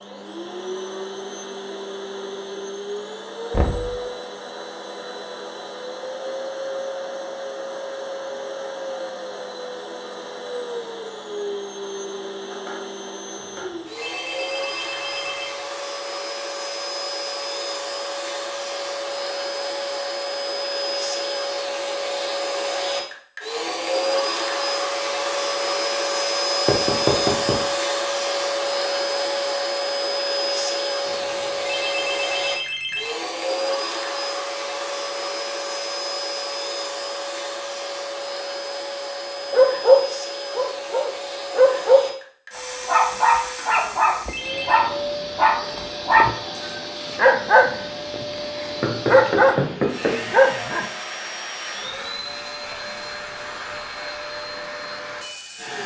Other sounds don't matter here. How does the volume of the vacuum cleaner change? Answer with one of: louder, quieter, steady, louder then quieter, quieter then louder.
louder then quieter.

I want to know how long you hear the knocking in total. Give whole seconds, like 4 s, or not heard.
3 s.